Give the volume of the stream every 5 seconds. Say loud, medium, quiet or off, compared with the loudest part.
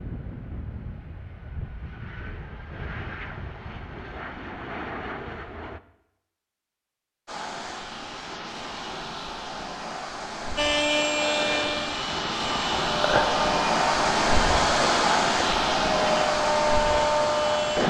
off, medium, loud, loud.